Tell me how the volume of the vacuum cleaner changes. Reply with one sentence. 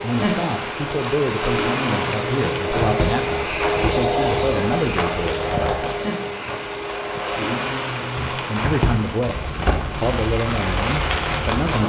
The loudness of the vacuum cleaner goes up, then down.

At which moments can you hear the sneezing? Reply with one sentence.
You can't hear the sneezing here.